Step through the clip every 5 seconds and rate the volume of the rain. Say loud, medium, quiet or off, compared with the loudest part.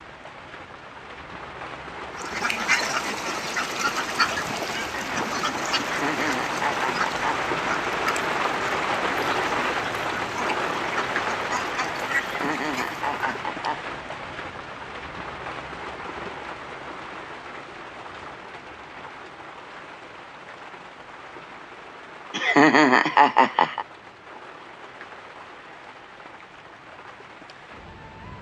medium, loud, loud, medium, quiet, quiet.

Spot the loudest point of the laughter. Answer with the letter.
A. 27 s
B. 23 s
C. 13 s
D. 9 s
B.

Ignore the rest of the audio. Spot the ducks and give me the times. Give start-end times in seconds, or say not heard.
2.1-13.5.